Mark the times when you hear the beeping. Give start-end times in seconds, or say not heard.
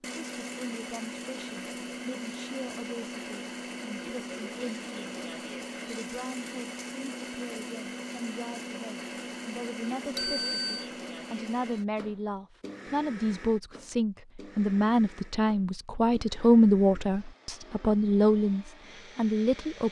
10.2-10.9.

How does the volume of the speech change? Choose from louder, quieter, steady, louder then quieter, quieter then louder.
louder.